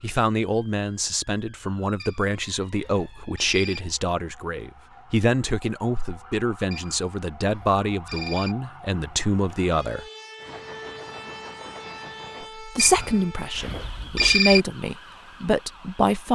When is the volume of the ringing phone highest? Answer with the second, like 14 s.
14 s.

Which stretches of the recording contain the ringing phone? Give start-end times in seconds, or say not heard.
2.0-3.9, 6.7-8.6, 12.8-14.6.